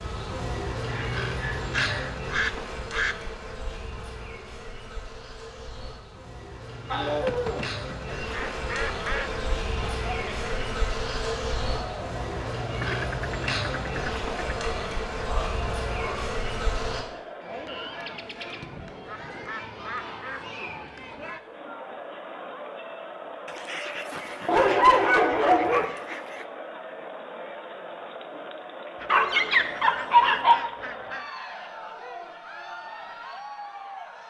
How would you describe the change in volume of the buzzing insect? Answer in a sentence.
The loudness of the buzzing insect goes down, then up.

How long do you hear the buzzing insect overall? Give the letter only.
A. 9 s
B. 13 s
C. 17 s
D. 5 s
C.